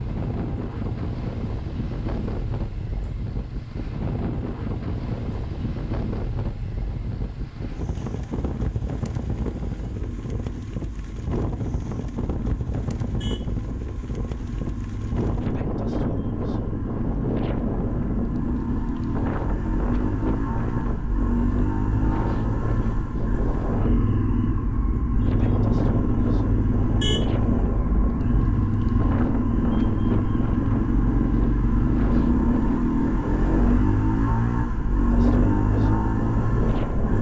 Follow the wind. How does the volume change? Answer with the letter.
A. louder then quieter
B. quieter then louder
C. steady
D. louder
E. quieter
C.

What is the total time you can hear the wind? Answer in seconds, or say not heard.
37 s.